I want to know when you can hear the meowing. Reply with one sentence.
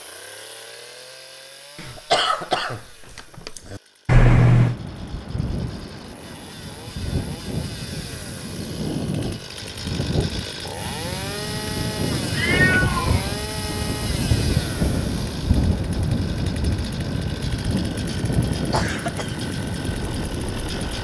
You can hear the meowing from 4.0 to 4.8 s and from 12.1 to 13.3 s.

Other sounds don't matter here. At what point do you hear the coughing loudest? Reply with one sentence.
The volume of the coughing peaks at 2 seconds.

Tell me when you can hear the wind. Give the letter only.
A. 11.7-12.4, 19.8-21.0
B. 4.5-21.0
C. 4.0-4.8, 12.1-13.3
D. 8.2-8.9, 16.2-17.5
B.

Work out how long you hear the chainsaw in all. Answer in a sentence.
You can hear the chainsaw for 21 seconds altogether.